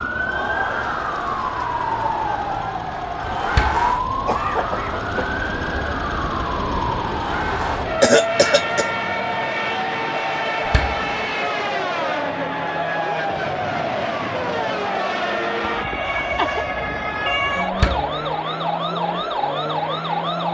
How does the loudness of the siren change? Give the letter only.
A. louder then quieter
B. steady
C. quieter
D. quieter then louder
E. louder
B.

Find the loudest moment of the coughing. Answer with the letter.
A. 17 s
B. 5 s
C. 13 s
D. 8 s
D.